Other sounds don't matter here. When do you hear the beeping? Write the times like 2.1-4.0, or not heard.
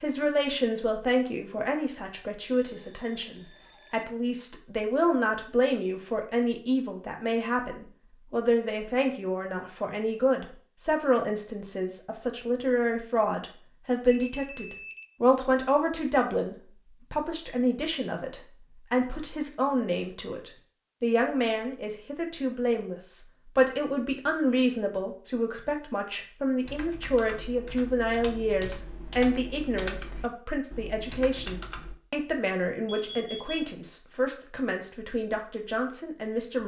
2.4-4.0, 14.1-15.1, 32.9-33.7.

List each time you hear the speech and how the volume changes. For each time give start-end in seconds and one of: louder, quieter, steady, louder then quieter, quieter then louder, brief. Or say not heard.
0.0-36.6 steady.